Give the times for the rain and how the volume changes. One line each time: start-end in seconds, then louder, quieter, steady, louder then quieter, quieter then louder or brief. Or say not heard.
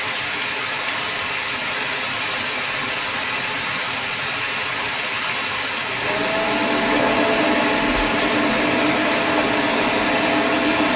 0.0-10.9 steady.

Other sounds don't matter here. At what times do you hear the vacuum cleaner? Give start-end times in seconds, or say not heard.
0.0-10.9.